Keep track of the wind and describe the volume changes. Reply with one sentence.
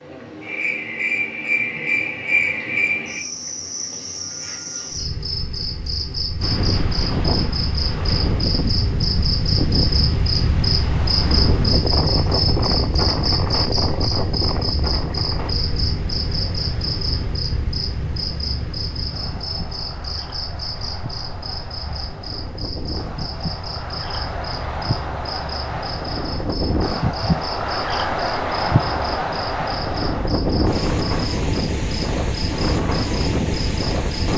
The loudness of the wind goes down, then up.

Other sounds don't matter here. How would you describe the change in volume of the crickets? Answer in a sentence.
The volume of the crickets goes down.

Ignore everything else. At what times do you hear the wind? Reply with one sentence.
You can hear the wind from 6.4 to 34.3 s.